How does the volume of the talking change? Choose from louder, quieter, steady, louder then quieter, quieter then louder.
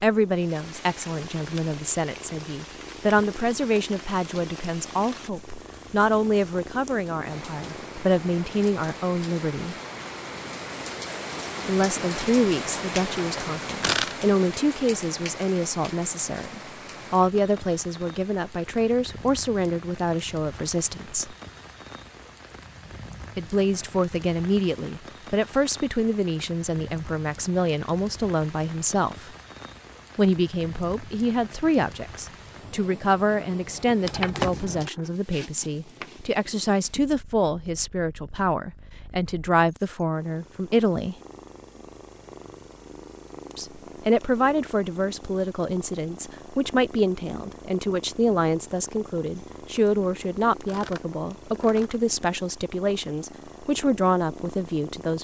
steady.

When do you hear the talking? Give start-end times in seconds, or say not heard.
0.0-9.8, 11.7-21.4, 23.4-29.3, 30.1-41.1, 43.5-55.1.